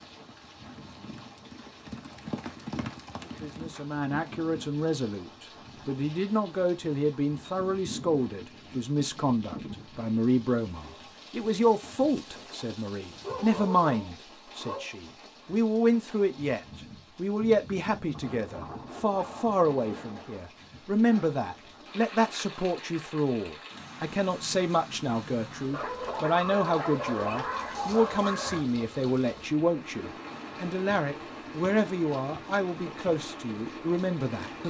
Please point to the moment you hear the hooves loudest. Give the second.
3 s.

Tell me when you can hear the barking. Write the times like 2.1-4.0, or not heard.
13.2-14.8, 25.7-28.6.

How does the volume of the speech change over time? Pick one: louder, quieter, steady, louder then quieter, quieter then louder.
steady.